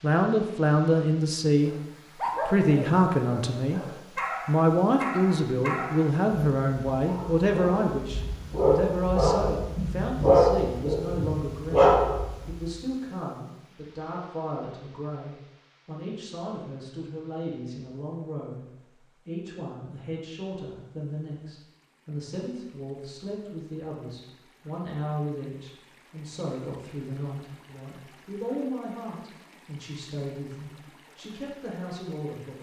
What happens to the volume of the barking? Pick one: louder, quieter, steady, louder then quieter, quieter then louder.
louder.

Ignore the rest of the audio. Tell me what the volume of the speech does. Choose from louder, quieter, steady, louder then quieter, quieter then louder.
quieter.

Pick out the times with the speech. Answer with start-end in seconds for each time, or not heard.
0.0-32.5.